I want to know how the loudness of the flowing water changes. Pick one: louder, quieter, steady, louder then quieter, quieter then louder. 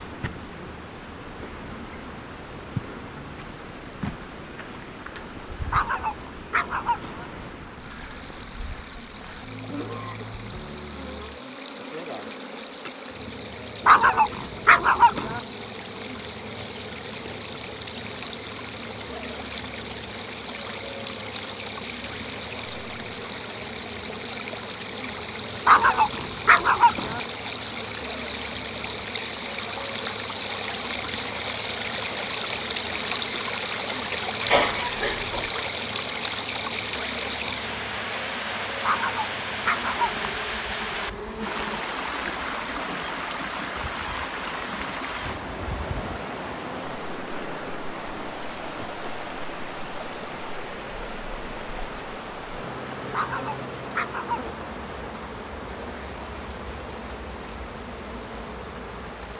louder then quieter.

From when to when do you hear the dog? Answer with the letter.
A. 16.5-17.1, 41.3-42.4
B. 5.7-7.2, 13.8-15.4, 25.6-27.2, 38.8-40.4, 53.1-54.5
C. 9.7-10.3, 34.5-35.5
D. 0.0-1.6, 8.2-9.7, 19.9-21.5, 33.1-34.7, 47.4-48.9
B.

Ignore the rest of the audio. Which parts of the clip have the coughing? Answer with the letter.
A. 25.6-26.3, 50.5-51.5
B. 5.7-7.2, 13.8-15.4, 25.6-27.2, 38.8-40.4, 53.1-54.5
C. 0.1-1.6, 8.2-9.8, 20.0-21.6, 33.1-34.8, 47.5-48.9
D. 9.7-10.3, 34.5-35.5
D.